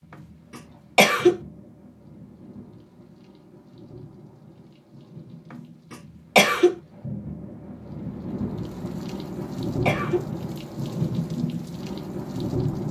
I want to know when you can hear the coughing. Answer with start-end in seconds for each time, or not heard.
0.9-1.4, 5.9-6.8, 9.4-10.2.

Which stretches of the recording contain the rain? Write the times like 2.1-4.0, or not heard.
0.0-12.8.